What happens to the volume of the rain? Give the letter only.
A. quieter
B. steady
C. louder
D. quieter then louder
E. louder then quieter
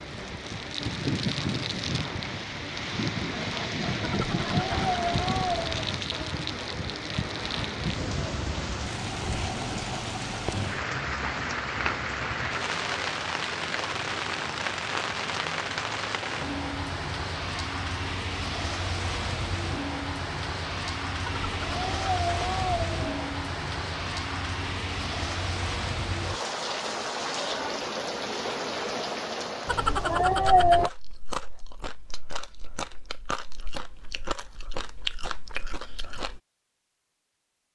B.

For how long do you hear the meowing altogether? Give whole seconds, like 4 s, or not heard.
5 s.